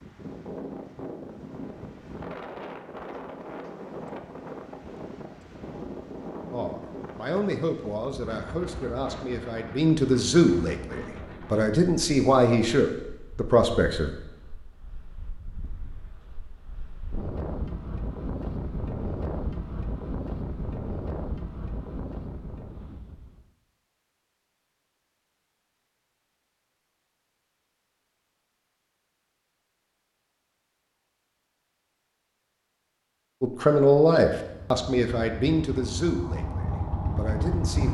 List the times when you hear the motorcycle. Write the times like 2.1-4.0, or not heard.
34.5-37.8.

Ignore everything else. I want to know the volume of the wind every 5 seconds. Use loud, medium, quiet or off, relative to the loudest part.
loud, loud, medium, loud, loud, off, off, off.